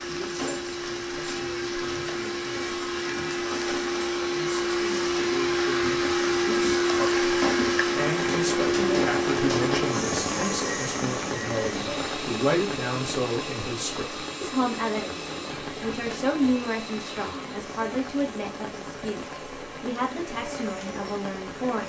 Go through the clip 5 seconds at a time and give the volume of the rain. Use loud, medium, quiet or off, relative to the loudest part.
medium, loud, loud, medium, medium.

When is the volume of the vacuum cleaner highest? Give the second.
7 s.